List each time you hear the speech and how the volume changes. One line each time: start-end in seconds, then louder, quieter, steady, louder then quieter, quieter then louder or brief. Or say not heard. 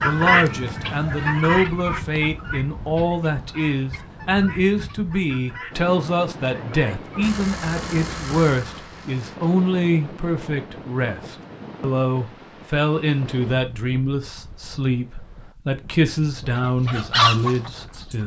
0.0-18.2 steady.